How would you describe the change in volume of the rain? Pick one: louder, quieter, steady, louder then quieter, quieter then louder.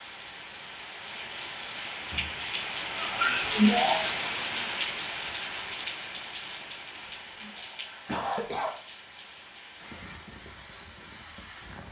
louder then quieter.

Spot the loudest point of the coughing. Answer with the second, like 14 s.
4 s.